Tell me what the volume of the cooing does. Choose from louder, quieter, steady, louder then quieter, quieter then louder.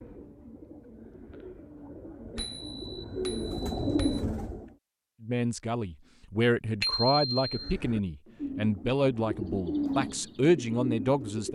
louder.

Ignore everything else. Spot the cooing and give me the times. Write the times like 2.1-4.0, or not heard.
0.0-4.7, 7.5-11.4.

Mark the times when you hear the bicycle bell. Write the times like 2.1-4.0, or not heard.
2.4-4.2, 6.8-7.5.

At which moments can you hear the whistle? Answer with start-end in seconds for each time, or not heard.
not heard.